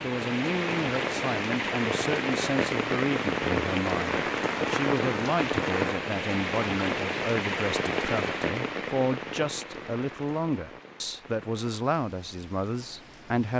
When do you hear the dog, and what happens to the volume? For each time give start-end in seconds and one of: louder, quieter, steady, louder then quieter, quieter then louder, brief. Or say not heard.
not heard.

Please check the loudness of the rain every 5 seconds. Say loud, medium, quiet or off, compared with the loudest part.
loud, loud, quiet.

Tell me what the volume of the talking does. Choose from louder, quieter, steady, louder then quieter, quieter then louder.
steady.